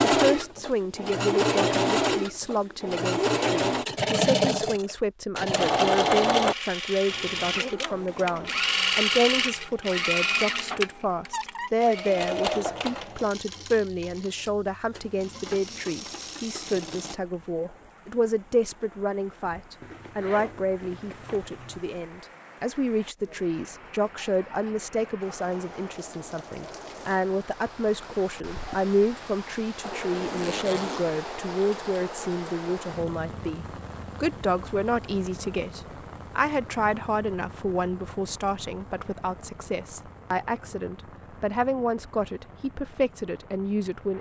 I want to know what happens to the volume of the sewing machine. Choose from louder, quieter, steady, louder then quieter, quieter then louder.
quieter.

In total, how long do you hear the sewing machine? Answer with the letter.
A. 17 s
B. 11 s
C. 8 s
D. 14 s
A.